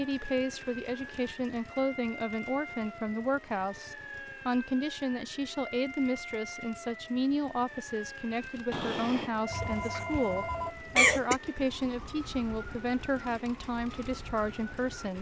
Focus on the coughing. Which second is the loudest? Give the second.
11 s.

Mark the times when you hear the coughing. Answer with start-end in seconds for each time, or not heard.
9.5-11.3.